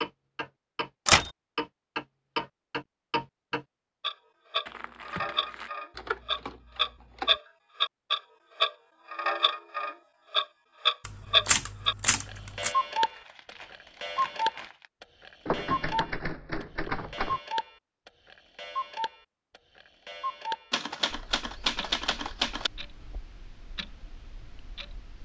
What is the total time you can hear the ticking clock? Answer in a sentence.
You can hear the ticking clock for 25 seconds altogether.